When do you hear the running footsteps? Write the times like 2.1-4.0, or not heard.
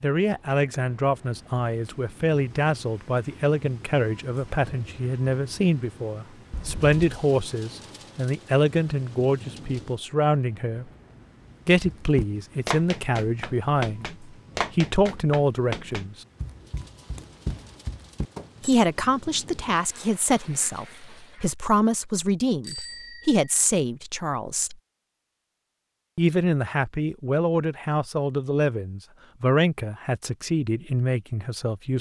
11.8-18.4.